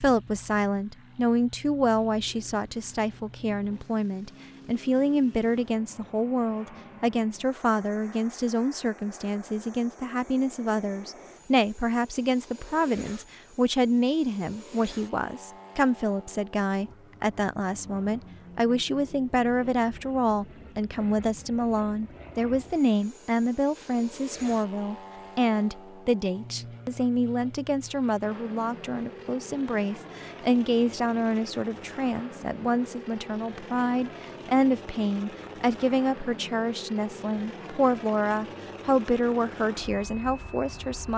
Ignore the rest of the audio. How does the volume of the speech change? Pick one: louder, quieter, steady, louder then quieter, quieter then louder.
steady.